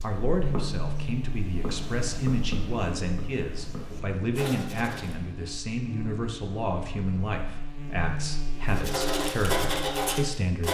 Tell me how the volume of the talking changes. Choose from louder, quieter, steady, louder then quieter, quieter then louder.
steady.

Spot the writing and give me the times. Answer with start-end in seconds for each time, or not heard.
0.0-5.2, 8.7-10.6.